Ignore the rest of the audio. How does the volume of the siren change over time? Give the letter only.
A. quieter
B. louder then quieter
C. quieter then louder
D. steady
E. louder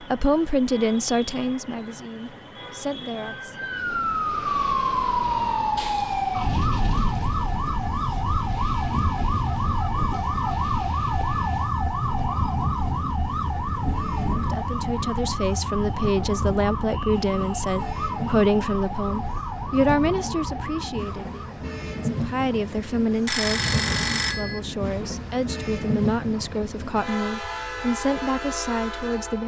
A.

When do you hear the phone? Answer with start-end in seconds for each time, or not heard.
23.2-24.6.